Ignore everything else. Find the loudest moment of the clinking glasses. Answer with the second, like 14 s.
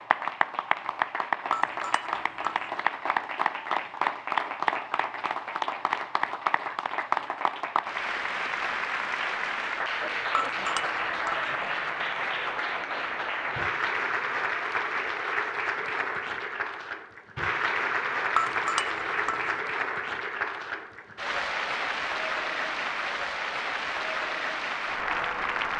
19 s.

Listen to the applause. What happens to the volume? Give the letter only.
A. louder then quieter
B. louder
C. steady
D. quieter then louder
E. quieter
C.